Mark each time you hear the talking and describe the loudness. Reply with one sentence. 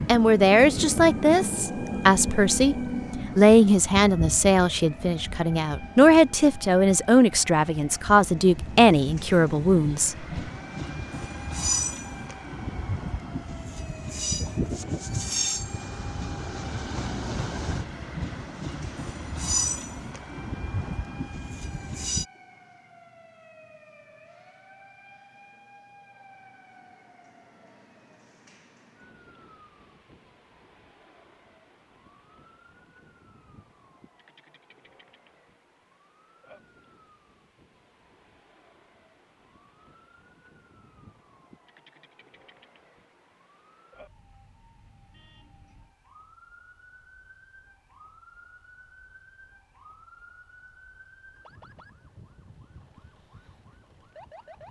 The talking can be heard briefly from 0.1 to 2.8 s; and from 3.4 to 10.2 s, at a steady volume.